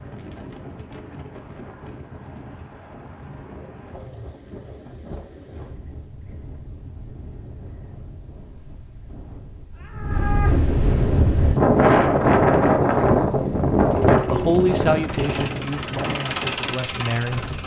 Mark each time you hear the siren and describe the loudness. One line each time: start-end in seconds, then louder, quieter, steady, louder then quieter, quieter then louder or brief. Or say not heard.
not heard.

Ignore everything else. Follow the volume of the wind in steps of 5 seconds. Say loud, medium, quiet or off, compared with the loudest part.
quiet, quiet, loud, quiet.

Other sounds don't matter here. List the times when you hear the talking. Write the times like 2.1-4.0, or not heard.
14.2-17.4.